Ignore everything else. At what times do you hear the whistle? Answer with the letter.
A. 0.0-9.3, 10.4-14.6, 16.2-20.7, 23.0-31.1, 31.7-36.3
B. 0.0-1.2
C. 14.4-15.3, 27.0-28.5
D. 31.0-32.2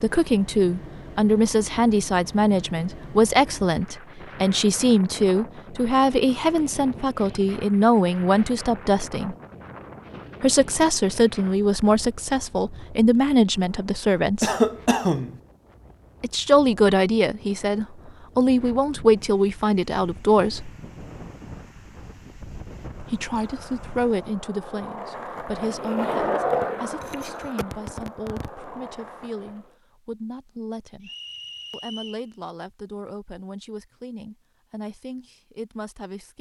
D.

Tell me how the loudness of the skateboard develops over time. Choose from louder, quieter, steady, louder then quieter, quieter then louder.
louder then quieter.